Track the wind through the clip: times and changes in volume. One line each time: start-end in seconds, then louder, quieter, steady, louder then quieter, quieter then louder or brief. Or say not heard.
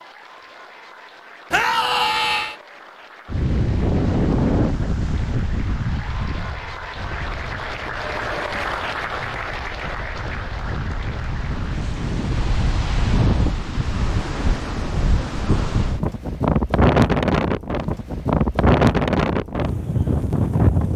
3.2-20.9 quieter then louder.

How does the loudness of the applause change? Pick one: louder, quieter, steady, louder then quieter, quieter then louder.
louder then quieter.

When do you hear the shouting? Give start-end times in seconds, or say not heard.
1.5-2.5.